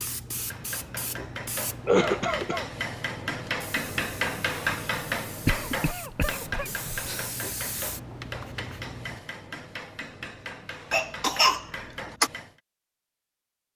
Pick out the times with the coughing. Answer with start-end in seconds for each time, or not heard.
1.9-2.6, 5.5-7.2, 10.9-12.3.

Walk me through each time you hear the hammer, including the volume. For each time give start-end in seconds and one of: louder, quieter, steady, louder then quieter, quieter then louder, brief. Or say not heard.
0.3-12.6 louder then quieter.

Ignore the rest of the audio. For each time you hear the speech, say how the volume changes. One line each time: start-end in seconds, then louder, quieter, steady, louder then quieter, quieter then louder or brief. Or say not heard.
not heard.